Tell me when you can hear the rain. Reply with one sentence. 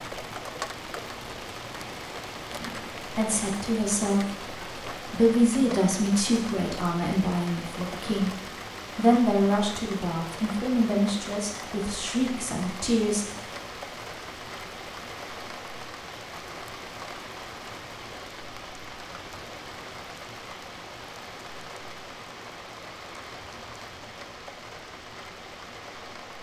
The rain can be heard from 0.0 to 26.3 s.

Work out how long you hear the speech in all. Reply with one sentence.
The speech can be heard for 11 seconds in total.